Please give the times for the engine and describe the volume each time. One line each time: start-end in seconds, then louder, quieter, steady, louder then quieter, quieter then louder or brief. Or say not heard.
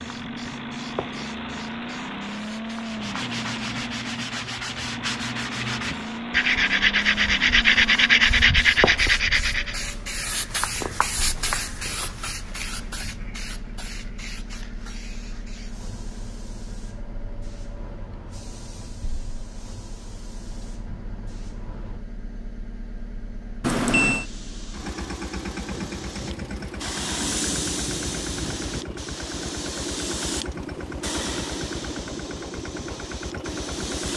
0.0-34.1 quieter then louder.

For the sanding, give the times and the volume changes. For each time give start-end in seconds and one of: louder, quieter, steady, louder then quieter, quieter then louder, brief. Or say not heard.
2.8-9.8 louder.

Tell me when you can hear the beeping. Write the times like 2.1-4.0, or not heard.
23.6-24.2.